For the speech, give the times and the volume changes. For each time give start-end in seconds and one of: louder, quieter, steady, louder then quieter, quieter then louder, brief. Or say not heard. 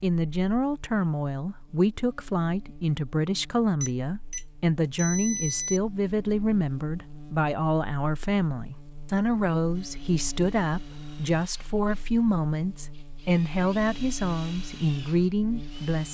0.0-16.0 steady.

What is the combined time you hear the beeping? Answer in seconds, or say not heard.
2 s.